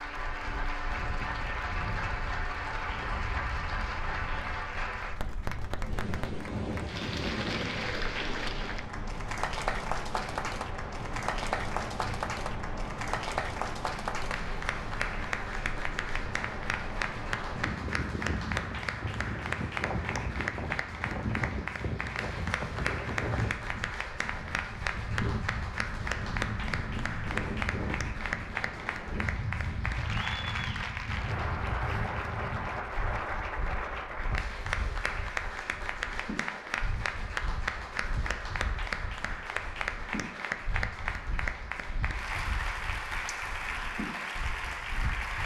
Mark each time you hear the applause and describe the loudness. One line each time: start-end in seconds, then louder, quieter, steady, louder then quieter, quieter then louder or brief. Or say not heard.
0.0-45.4 steady.